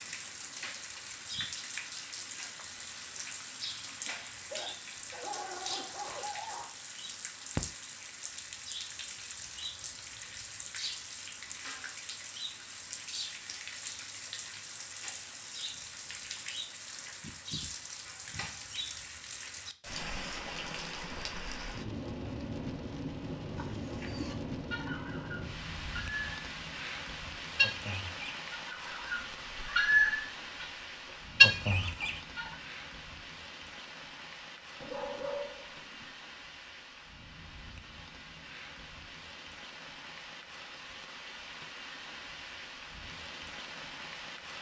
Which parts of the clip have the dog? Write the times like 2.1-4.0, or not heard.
4.0-6.8, 34.8-36.1.